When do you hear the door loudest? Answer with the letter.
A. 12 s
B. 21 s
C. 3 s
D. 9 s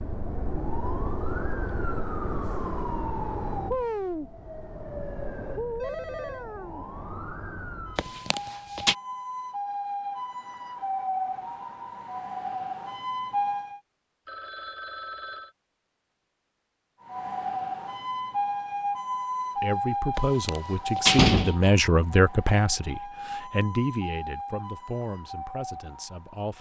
B.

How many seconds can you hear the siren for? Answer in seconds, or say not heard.
23 s.